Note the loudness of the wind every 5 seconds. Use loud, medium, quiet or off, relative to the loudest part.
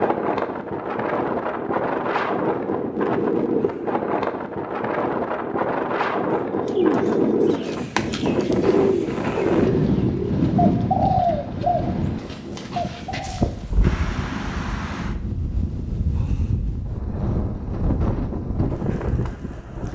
loud, loud, loud, medium.